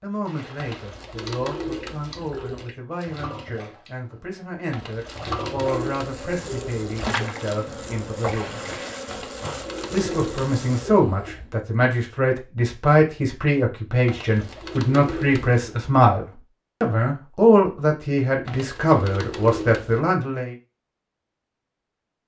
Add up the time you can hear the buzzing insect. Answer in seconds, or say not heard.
5 s.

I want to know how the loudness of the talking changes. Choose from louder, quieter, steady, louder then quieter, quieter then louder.
louder.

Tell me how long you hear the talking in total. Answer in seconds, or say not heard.
19 s.